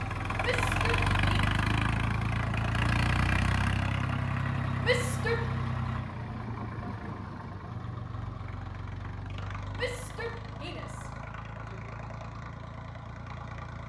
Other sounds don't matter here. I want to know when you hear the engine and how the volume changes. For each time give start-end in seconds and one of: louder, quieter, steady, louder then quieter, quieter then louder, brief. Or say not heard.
0.0-13.8 quieter.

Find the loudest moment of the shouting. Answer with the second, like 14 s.
5 s.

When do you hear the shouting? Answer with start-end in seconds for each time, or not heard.
0.4-1.5, 4.8-5.5, 9.8-11.9.